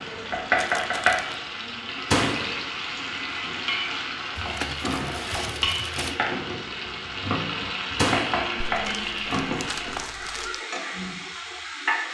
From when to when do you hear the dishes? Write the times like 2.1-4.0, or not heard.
not heard.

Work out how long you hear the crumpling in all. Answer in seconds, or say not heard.
5 s.